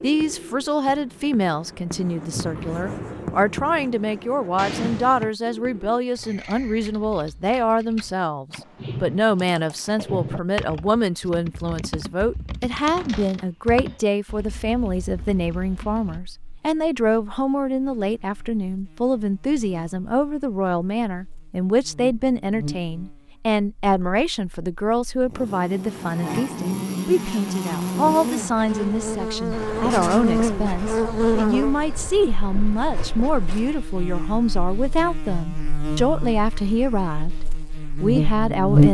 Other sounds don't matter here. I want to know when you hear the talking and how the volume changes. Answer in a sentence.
You can hear the talking from 0.0 to 38.8 s, at a steady volume.